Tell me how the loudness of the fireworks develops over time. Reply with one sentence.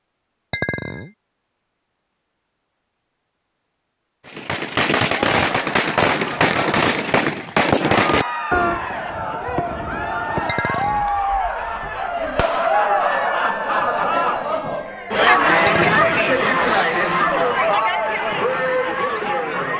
The volume of the fireworks goes down.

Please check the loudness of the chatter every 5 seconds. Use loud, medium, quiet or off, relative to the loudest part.
off, medium, loud, loud.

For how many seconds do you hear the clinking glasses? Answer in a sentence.
The clinking glasses can be heard for 2 seconds in total.